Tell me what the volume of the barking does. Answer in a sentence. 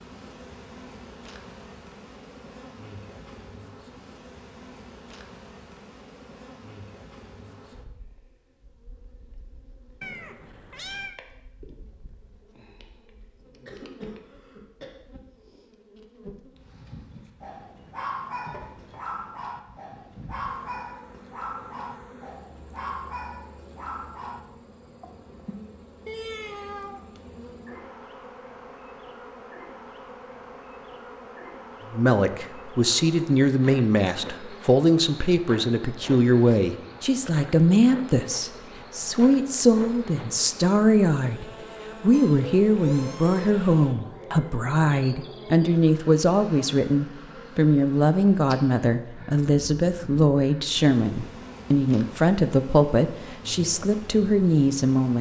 The volume of the barking stays about the same.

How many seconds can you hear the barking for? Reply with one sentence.
The barking can be heard for 7 seconds in total.